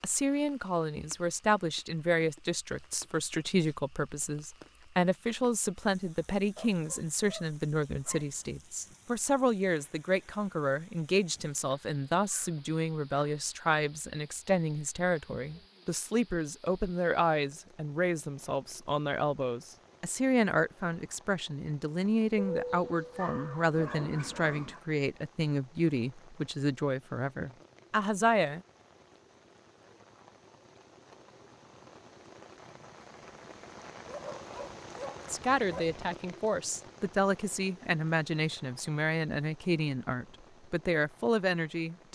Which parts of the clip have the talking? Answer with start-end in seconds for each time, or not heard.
0.0-28.6, 35.2-42.0.